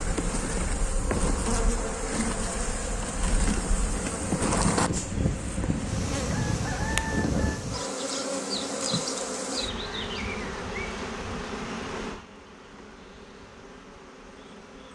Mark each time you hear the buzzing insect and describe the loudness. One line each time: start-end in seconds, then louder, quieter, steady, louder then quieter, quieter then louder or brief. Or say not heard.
0.0-14.9 quieter.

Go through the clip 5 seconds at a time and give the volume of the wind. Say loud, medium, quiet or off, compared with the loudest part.
medium, loud, off.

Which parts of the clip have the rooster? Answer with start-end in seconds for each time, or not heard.
6.2-7.6.